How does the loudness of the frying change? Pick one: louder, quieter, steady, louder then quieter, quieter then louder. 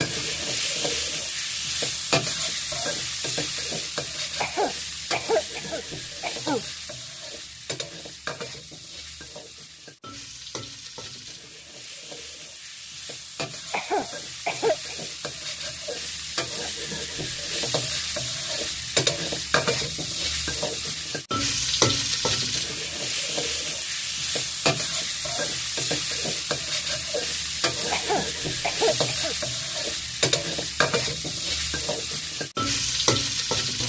quieter then louder.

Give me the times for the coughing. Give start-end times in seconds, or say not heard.
4.4-6.7, 13.7-14.9, 27.9-29.4.